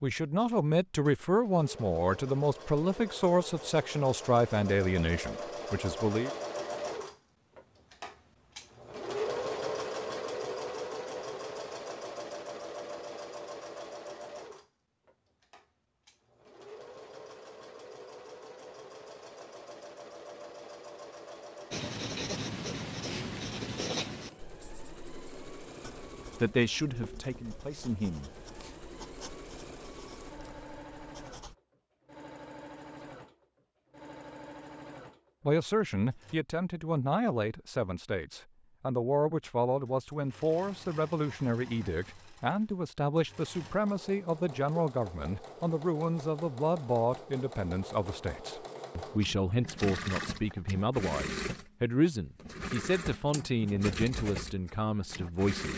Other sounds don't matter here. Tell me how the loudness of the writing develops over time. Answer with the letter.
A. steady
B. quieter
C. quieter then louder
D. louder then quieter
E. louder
B.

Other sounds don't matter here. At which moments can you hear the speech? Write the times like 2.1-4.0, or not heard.
0.0-6.3, 26.3-28.3, 35.5-55.7.